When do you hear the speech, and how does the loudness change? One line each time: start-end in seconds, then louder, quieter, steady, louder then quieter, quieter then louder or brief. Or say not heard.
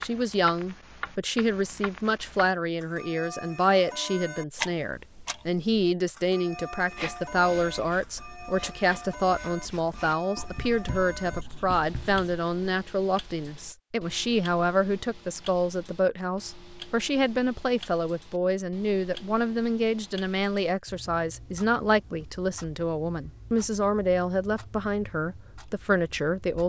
0.0-26.6 steady.